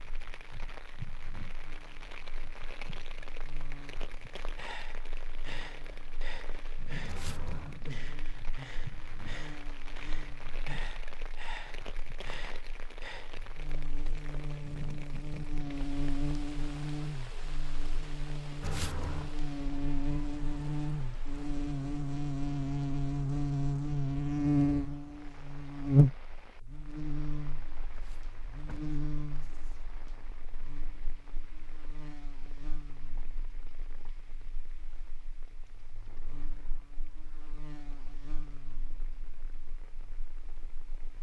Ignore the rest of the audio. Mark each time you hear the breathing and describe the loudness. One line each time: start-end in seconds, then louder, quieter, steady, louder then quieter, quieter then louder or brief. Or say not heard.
4.3-13.4 steady.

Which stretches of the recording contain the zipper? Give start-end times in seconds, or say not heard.
7.0-7.8, 18.6-19.4, 27.9-29.8.